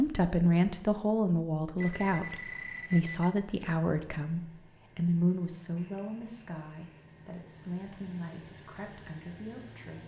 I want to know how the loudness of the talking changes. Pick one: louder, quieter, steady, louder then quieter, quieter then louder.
quieter.